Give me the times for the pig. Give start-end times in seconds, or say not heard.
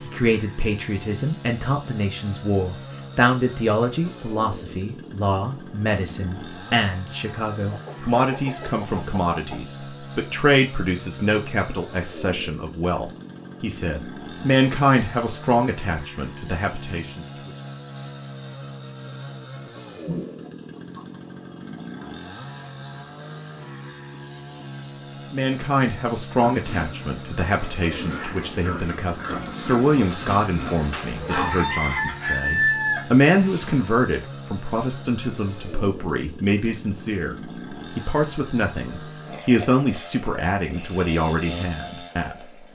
26.4-31.8.